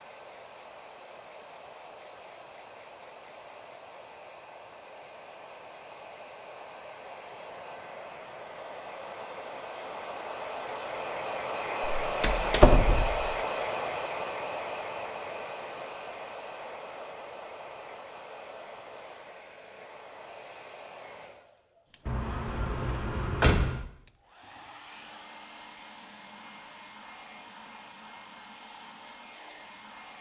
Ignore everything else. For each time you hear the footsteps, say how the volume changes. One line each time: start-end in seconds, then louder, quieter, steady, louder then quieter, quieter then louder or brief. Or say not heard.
not heard.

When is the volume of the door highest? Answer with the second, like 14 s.
13 s.